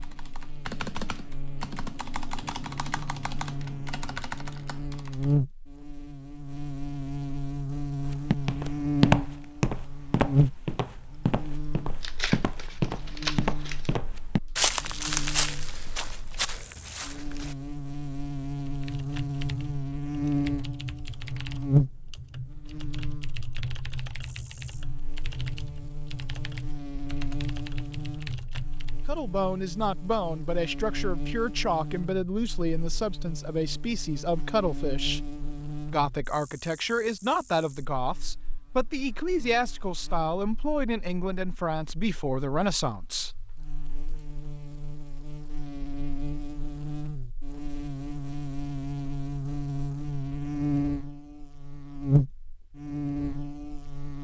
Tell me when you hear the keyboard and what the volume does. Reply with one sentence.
The keyboard can be heard from 0.0 to 5.3 s, at a steady volume; and from 18.6 to 29.1 s, at a steady volume.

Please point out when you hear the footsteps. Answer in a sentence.
The footsteps can be heard from 8.0 to 17.6 s.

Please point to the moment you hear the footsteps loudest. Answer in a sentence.
The loudest moment of the footsteps is at 9 seconds.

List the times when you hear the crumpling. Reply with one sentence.
The crumpling can be heard from 12.0 to 13.9 s.